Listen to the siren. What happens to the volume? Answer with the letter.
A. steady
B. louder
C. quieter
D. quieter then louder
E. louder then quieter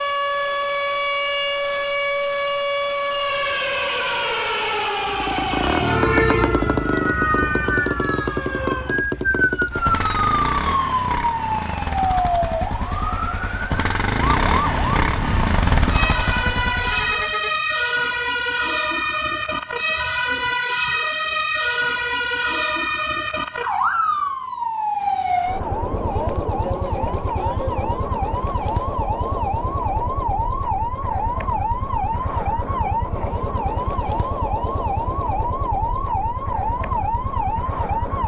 A.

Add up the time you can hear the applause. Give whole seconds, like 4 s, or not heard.
not heard.